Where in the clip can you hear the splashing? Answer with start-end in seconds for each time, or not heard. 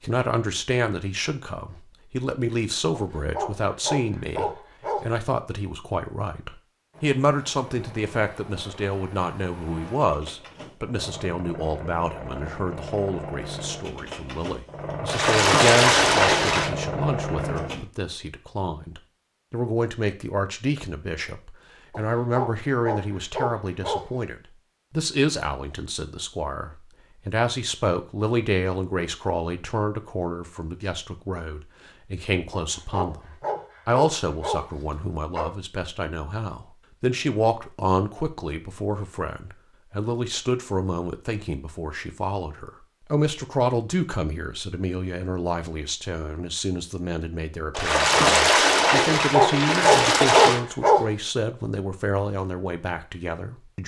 15.1-16.7, 47.7-50.6.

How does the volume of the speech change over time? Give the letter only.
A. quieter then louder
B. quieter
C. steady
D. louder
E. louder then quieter
C.